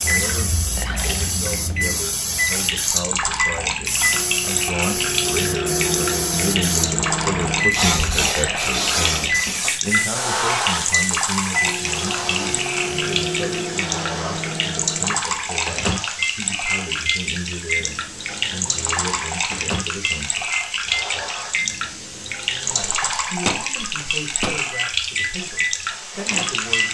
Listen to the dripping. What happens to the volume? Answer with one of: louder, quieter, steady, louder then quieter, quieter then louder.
steady.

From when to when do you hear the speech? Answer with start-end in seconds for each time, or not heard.
0.0-20.6, 22.6-26.8.